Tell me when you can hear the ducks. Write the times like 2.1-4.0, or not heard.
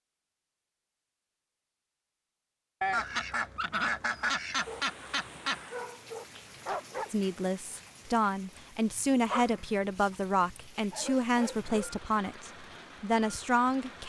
2.8-5.7.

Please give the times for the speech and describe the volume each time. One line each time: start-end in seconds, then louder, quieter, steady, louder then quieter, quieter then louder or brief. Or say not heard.
7.1-14.0 steady.